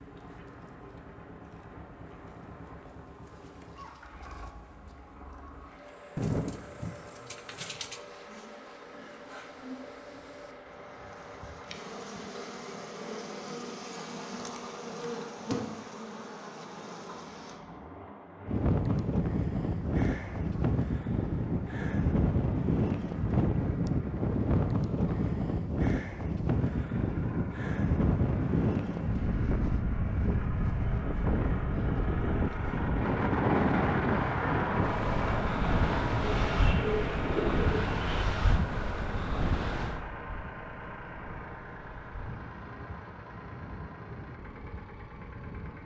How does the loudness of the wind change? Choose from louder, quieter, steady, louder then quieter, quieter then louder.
quieter.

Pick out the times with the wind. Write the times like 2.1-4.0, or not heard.
18.4-45.8.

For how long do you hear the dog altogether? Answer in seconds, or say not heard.
not heard.